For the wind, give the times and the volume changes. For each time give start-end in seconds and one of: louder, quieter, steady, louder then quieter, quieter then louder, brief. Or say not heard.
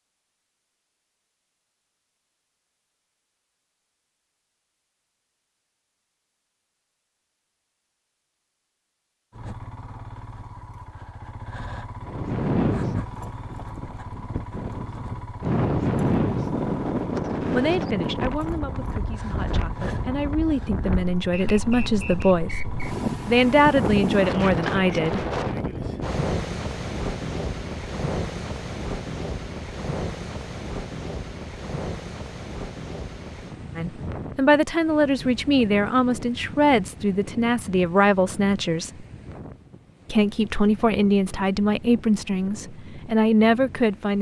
12.0-44.1 quieter.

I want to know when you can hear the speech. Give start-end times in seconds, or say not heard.
17.5-25.2, 33.8-39.0, 40.1-44.1.